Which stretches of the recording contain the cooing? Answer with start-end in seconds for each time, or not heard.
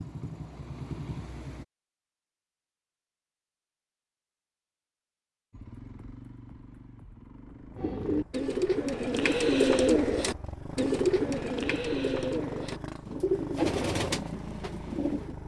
7.8-15.3.